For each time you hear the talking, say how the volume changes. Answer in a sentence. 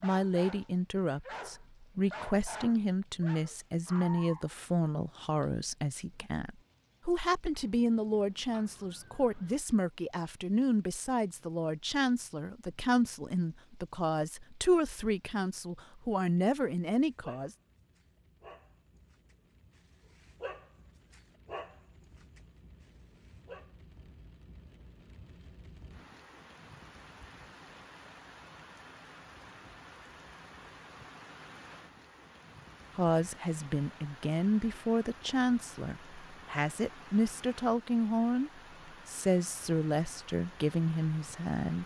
You can hear the talking from 0.0 to 17.5 s, at a steady volume; and from 33.0 to 41.8 s, at a steady volume.